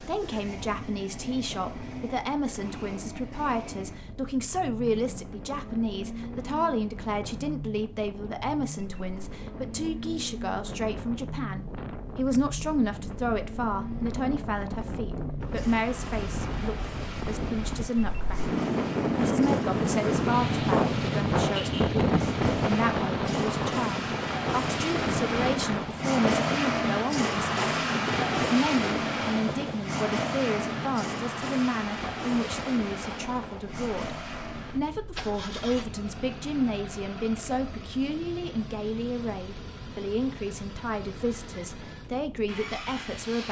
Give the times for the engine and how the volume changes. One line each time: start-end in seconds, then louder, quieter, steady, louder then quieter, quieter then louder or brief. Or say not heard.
0.0-43.4 louder then quieter.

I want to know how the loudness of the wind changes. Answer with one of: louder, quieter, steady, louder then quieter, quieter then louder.
louder then quieter.